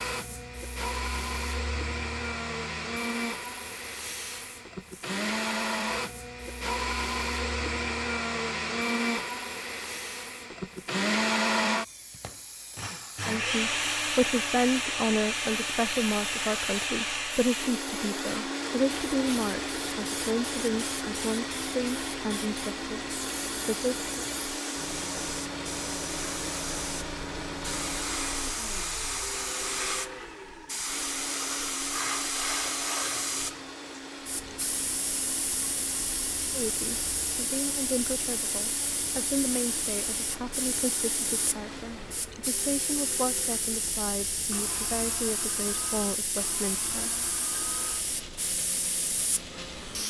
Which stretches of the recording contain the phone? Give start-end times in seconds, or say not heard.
not heard.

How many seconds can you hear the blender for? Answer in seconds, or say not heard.
50 s.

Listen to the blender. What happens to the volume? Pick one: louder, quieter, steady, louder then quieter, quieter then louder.
quieter.